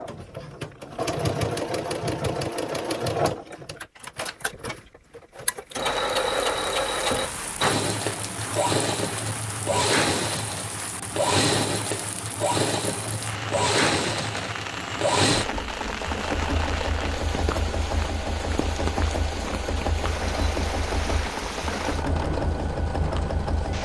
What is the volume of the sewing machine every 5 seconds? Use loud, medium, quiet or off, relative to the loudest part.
loud, loud, loud, loud, medium.